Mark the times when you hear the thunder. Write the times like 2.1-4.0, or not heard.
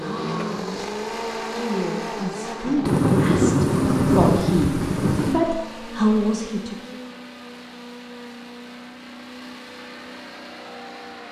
2.9-5.4.